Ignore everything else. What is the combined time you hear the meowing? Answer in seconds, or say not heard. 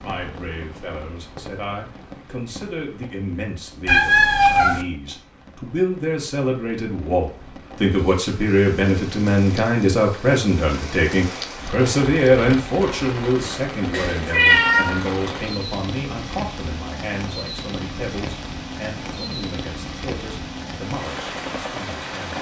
2 s.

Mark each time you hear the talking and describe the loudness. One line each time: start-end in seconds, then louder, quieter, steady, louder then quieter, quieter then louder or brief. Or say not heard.
0.0-22.3 louder then quieter.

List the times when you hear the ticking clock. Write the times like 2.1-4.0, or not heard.
not heard.